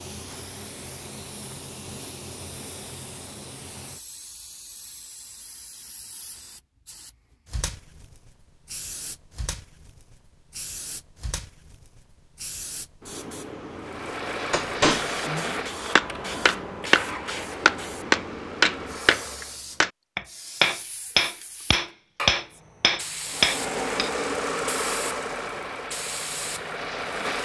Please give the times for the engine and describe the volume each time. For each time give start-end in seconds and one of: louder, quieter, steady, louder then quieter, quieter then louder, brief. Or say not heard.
13.8-19.6 quieter
23.2-27.4 quieter.